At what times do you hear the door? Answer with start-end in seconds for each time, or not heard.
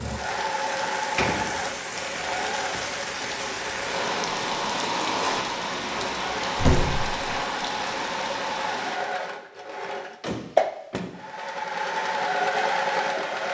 0.6-2.0, 5.8-7.2, 10.2-11.1.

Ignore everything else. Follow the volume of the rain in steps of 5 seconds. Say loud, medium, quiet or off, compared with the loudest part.
loud, loud, off.